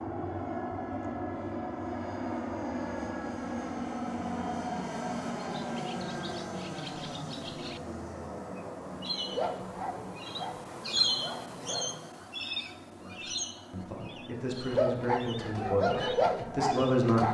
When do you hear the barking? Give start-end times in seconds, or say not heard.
9.2-11.9, 14.7-17.3.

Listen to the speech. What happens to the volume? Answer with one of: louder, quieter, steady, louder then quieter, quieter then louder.
louder.